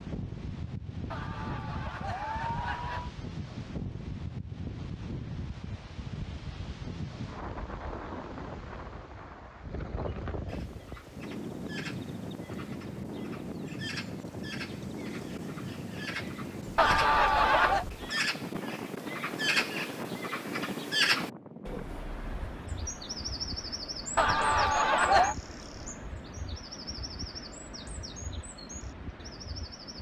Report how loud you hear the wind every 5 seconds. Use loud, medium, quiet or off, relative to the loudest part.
loud, loud, loud, loud, loud, medium.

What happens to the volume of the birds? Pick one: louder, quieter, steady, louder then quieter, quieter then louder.
louder then quieter.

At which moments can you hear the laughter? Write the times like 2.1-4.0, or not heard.
1.1-3.1, 16.8-17.9, 24.1-25.4.